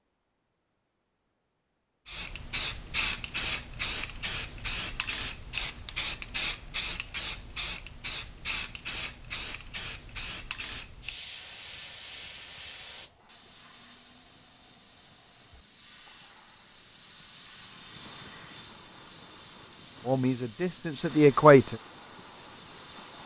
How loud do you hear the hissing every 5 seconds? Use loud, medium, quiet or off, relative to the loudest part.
loud, loud, medium, medium, medium.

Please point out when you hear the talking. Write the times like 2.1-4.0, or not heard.
20.1-21.8.